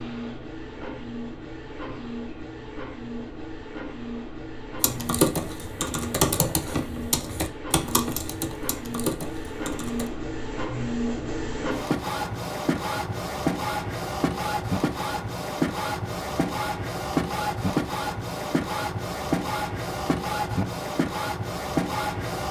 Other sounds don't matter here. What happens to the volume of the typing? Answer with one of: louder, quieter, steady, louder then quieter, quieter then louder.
quieter.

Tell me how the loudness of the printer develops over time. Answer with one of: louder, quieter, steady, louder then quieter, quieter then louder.
louder.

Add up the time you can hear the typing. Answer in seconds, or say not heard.
5 s.